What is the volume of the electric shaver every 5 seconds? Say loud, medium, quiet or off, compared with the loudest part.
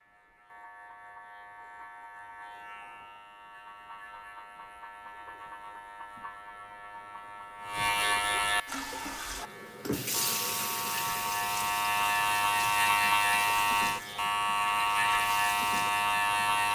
quiet, medium, loud, loud.